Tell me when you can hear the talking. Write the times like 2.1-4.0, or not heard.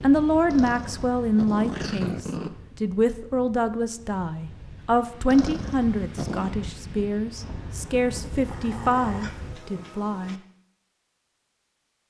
0.0-10.4.